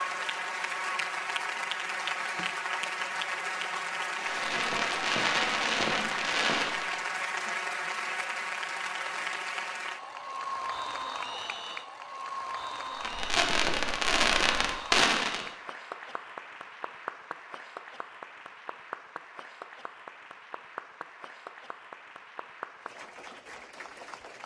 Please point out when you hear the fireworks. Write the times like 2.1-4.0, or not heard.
4.2-7.0, 12.9-15.4.